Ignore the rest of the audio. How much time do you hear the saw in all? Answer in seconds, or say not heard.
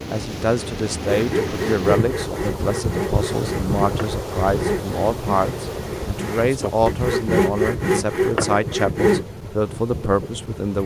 8 s.